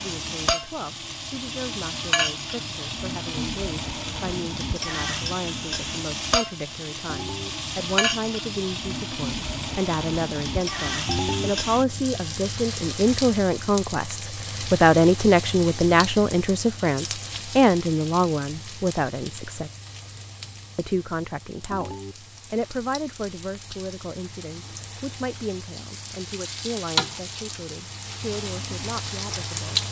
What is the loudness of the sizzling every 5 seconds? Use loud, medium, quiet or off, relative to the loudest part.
loud, loud, loud, medium, quiet, loud.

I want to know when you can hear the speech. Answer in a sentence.
The speech can be heard from 0.0 to 19.7 s and from 20.8 to 29.8 s.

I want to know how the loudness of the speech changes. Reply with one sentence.
The loudness of the speech goes up, then down.